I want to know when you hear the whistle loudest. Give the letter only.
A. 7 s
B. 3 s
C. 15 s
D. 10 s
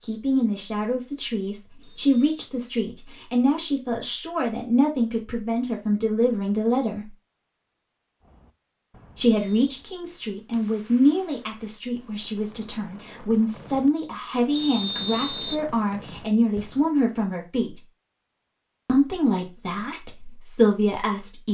C.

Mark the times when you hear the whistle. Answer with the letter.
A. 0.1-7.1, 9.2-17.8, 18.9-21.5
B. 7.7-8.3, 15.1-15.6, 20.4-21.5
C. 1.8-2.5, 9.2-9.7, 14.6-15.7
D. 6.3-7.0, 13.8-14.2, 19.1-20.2
C.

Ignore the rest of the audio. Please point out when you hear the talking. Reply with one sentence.
You can hear the talking from 0.1 to 7.1 s, from 9.2 to 17.8 s and from 18.9 to 21.5 s.